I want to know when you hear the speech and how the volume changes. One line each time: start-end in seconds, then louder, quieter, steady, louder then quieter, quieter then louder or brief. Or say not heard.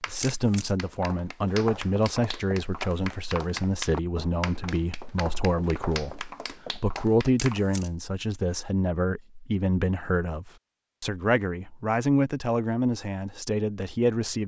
0.1-14.4 steady.